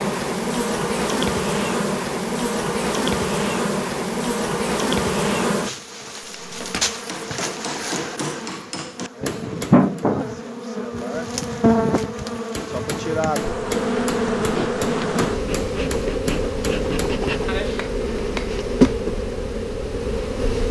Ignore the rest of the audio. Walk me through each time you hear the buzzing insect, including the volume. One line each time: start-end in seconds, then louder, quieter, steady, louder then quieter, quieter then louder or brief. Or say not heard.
0.0-20.6 steady.